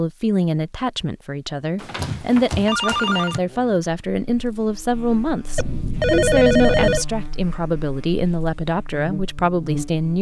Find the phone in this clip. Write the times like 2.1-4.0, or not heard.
1.8-3.4, 5.5-7.0.